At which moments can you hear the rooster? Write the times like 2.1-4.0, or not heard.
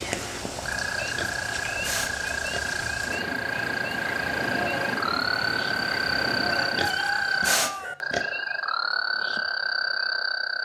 6.4-8.0.